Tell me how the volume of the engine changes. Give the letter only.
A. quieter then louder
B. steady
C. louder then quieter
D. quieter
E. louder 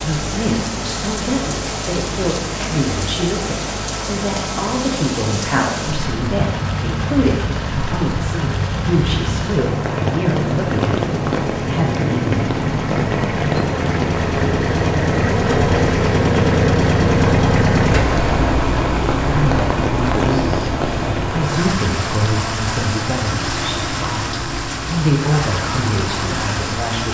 C.